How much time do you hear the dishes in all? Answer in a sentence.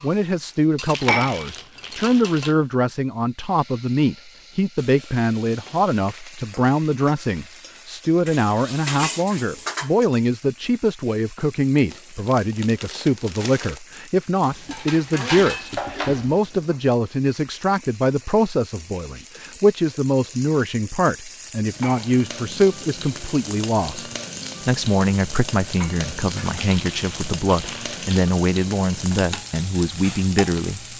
You can hear the dishes for 6 seconds altogether.